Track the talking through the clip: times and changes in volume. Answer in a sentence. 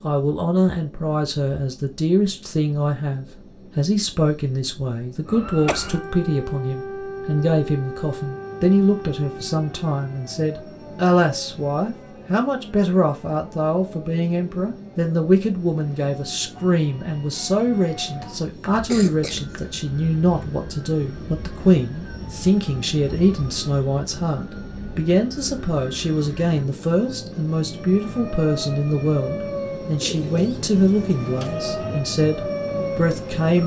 You can hear the talking from 0.0 to 33.6 s, at a steady volume.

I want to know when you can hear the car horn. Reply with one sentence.
You can't hear the car horn here.